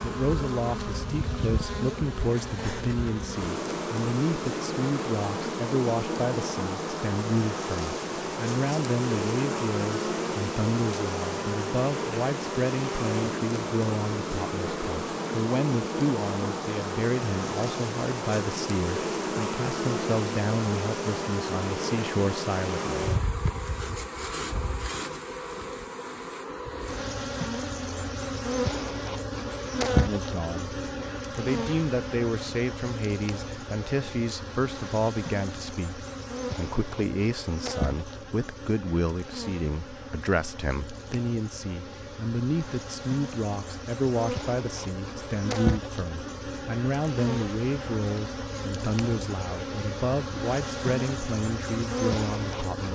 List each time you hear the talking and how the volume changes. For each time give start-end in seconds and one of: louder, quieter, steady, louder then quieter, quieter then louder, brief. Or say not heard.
0.0-23.1 steady
29.9-30.8 brief
31.4-52.8 steady.